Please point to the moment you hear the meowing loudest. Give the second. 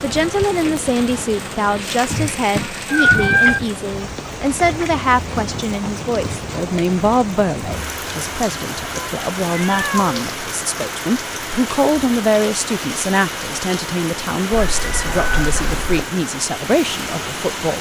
3 s.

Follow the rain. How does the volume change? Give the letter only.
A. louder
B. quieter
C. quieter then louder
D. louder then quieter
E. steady
E.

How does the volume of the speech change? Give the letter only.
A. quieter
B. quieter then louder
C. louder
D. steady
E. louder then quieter
D.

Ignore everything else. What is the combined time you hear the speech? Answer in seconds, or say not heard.
18 s.